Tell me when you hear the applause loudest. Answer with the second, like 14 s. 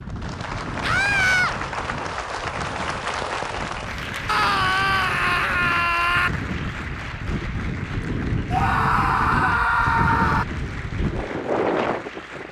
3 s.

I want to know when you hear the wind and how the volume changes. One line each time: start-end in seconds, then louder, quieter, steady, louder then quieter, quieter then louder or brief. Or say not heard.
0.0-12.4 louder.